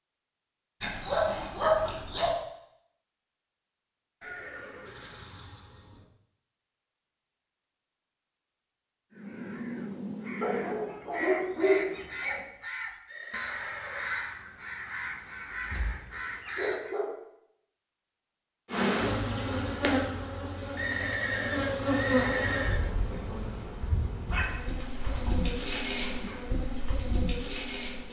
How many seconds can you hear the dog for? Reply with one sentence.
The dog can be heard for 7 seconds in total.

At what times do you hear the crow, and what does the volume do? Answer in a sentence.
You can hear the crow from 9.1 to 16.9 s, at a steady volume.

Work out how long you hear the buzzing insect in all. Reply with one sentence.
The buzzing insect can be heard for 9 seconds in total.